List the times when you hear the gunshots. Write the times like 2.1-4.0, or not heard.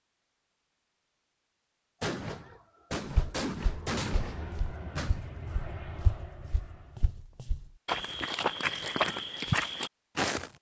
2.0-5.2.